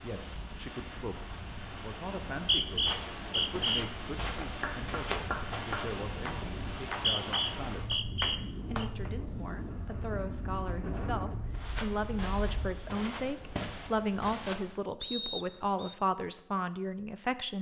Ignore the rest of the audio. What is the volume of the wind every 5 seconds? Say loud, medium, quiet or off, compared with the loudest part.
loud, loud, loud, off.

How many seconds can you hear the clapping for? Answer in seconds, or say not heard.
5 s.